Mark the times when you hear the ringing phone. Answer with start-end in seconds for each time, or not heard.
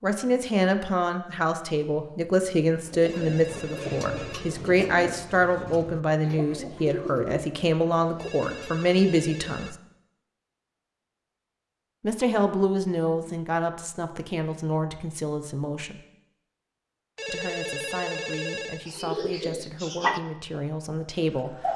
3.0-4.6, 8.2-9.8, 17.1-18.9.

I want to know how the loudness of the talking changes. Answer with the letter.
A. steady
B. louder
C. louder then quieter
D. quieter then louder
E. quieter
E.